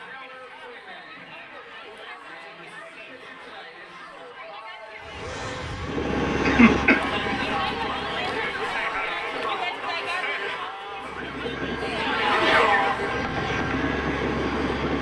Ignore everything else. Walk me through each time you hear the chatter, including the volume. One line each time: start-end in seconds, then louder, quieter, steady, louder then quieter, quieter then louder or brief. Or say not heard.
0.0-14.9 louder.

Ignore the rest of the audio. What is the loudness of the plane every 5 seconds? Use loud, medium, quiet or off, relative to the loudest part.
off, loud, loud.